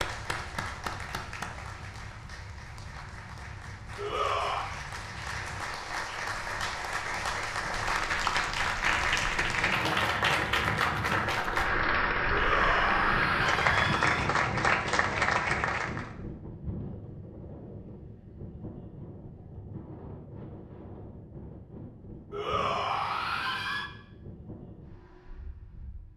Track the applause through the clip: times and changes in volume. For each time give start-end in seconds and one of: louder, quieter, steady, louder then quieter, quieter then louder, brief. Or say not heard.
0.0-16.1 louder.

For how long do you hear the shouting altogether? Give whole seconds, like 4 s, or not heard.
4 s.